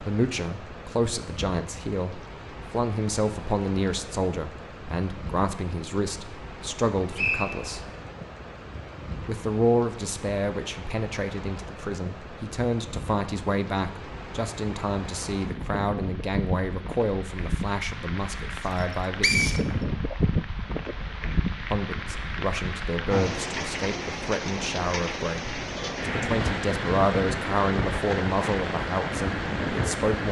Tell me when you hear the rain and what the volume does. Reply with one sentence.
The rain can be heard from 0.0 to 30.2 s, getting louder.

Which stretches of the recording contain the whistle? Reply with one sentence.
You can hear the whistle from 7.2 to 7.9 s and from 19.2 to 19.6 s.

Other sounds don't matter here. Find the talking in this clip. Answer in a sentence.
You can hear the talking from 0.0 to 7.9 s, from 9.2 to 19.4 s and from 21.7 to 30.2 s.